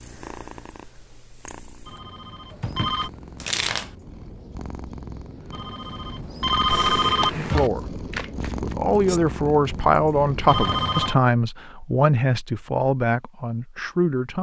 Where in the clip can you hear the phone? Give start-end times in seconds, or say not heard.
1.9-3.1, 5.5-7.7, 10.4-11.2.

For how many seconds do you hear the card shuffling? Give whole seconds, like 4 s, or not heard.
2 s.